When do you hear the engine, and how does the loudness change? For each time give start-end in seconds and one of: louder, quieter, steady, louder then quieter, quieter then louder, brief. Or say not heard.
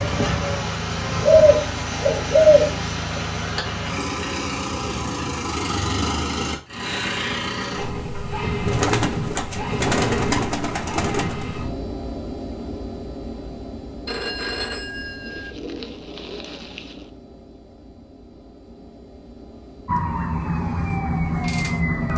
0.0-22.1 quieter.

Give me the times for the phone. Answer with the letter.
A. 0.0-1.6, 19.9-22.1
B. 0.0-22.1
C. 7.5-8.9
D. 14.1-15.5
D.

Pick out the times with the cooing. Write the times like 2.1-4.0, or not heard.
1.2-2.8, 8.7-11.4, 15.2-17.1.